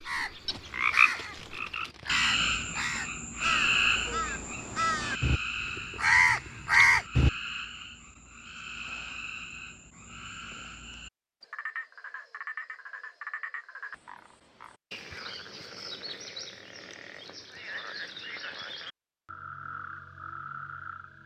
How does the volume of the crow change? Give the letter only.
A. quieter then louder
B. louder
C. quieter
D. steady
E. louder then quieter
B.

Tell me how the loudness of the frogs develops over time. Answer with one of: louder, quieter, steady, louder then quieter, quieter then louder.
quieter.